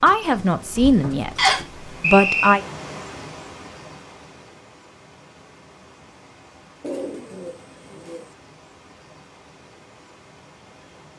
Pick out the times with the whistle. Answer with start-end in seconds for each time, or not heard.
1.4-2.6.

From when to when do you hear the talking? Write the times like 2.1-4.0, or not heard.
0.0-2.6.